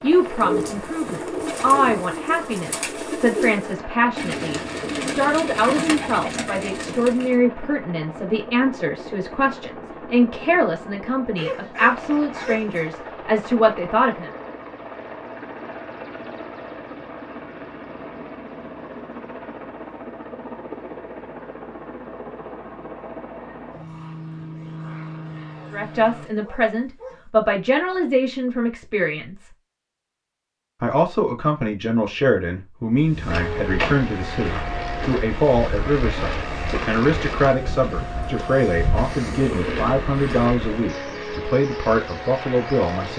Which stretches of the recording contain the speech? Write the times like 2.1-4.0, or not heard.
0.0-14.3, 25.7-29.5, 30.8-43.1.